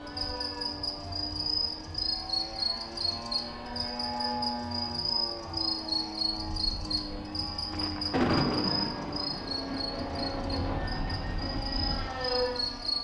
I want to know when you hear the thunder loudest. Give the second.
8 s.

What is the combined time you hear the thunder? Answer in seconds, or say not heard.
3 s.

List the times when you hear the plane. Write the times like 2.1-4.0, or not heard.
0.0-12.9.